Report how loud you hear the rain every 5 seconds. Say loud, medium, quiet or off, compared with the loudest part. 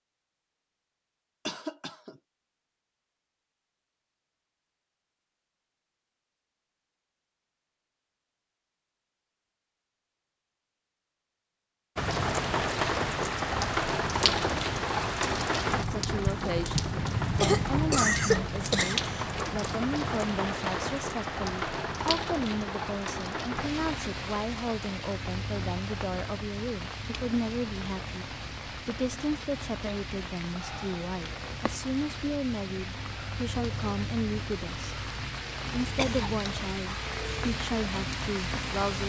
off, off, loud, loud, medium, medium, medium, medium.